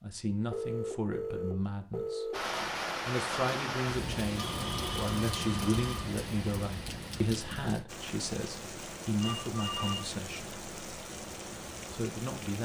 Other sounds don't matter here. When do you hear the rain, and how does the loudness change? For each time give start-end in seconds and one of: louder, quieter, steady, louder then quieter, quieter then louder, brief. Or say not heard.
2.3-12.6 quieter.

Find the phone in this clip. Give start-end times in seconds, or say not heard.
0.5-2.4, 4.3-6.0, 9.2-10.1.